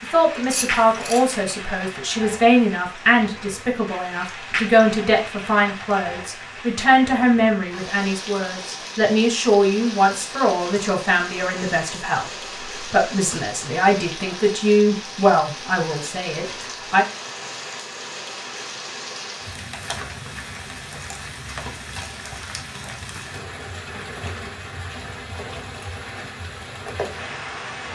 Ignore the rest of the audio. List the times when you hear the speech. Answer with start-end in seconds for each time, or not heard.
0.0-17.1.